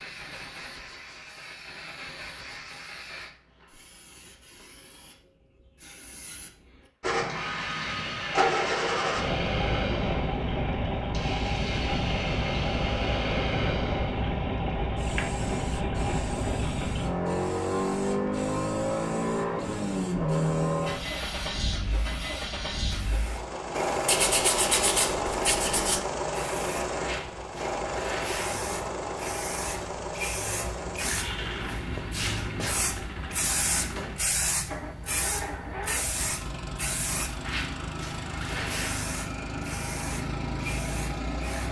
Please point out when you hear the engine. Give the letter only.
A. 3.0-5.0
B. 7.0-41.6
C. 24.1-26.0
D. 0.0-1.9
B.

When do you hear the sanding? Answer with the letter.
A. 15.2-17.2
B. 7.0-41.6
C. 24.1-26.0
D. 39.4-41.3
C.